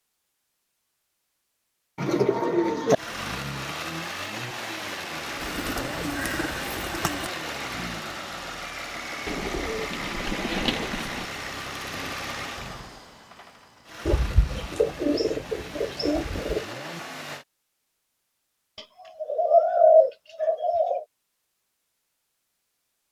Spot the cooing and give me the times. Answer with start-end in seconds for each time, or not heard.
1.9-3.0, 5.4-7.3, 9.2-11.2, 14.1-16.6, 18.8-21.1.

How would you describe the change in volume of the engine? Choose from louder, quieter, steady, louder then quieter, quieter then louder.
quieter.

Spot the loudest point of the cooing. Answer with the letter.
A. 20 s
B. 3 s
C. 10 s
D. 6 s
A.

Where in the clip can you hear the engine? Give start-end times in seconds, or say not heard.
2.9-17.4.